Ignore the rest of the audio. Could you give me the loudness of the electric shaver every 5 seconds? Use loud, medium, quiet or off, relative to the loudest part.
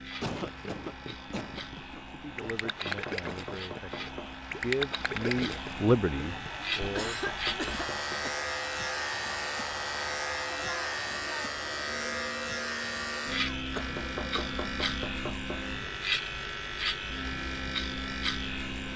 medium, loud, loud, loud.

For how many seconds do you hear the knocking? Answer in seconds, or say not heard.
5 s.